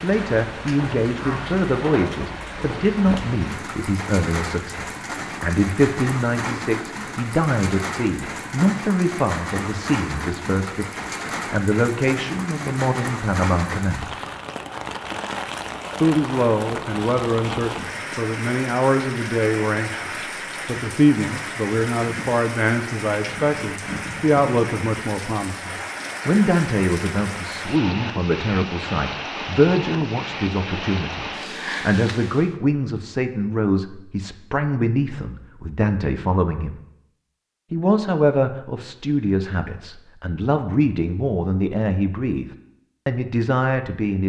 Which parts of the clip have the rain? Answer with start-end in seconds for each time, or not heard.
0.0-32.5.